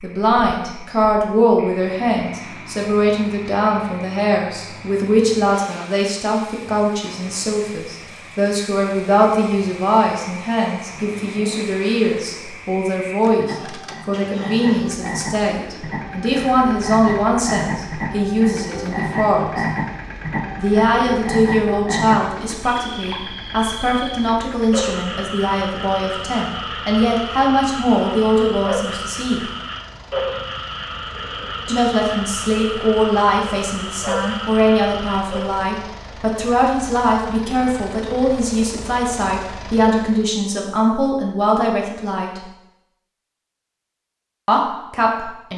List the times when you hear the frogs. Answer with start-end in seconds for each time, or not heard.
0.0-35.6.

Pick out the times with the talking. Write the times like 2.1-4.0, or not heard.
0.0-19.6, 20.6-29.5, 31.6-42.5, 44.5-45.5.